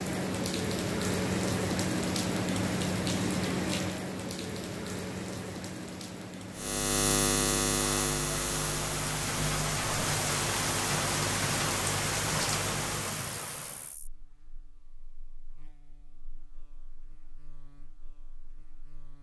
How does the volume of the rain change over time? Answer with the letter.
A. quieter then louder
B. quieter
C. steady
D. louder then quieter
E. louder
A.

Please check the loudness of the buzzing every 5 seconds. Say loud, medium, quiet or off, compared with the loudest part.
off, loud, medium, quiet.